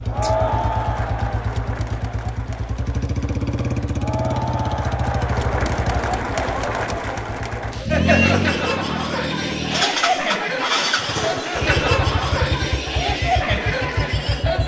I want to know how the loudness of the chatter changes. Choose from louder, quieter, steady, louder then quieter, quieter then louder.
louder.